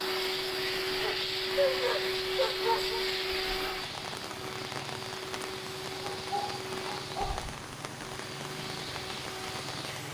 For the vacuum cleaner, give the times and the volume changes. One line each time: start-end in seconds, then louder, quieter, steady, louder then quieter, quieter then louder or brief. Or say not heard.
0.0-10.0 quieter.